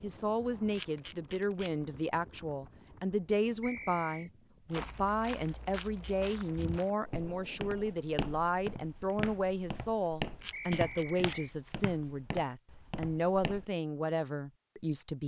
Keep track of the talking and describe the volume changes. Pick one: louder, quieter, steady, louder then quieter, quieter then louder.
steady.